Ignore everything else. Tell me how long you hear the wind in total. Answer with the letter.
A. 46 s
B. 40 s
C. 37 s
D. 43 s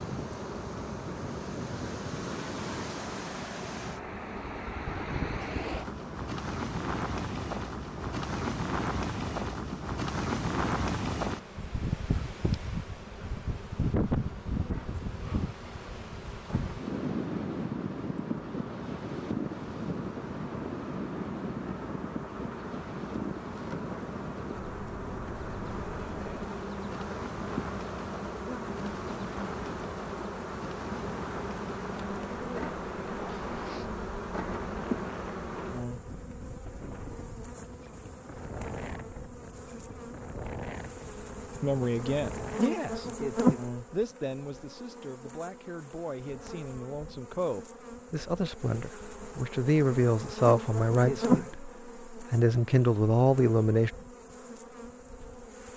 D.